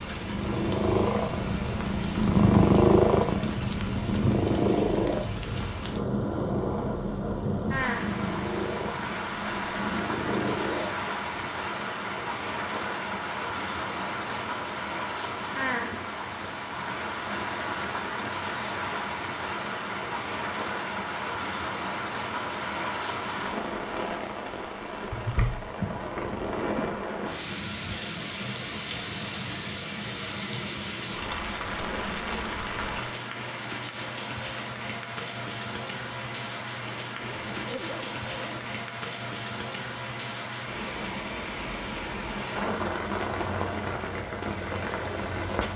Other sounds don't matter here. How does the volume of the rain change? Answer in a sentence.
The loudness of the rain stays about the same.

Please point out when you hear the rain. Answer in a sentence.
The rain can be heard from 0.0 to 45.7 s.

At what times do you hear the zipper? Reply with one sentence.
You can hear the zipper from 37.1 to 38.6 s.